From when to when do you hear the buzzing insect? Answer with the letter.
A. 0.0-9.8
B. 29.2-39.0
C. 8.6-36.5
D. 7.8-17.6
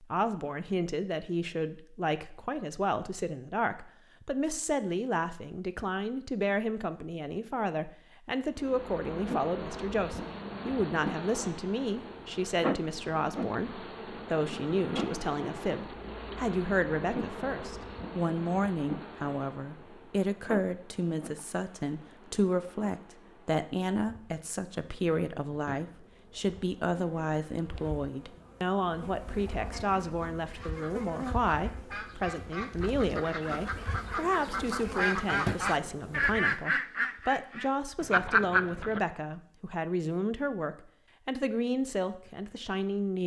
C.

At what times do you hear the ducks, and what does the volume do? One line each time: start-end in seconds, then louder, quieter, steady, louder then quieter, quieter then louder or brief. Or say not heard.
29.2-39.0 louder.